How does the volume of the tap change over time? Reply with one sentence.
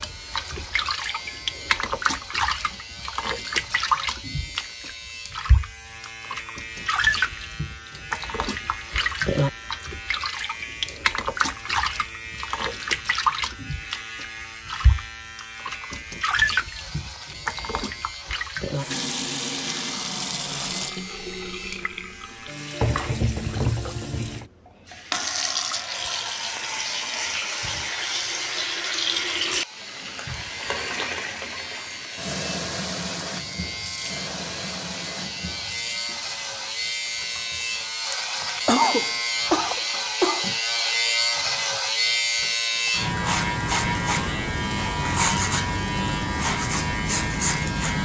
The loudness of the tap goes down.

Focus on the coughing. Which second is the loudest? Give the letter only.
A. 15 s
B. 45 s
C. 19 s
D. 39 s
D.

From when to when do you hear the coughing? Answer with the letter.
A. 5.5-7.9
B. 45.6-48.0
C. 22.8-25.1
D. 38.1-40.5
D.